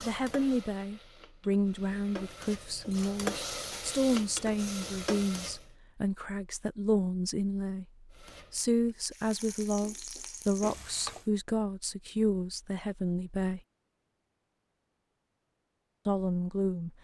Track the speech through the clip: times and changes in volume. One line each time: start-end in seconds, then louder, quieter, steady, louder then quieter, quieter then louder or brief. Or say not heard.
0.0-13.6 steady
16.1-16.9 brief.